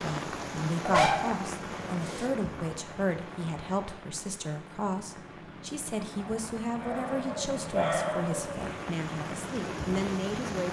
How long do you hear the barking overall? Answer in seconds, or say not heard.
4 s.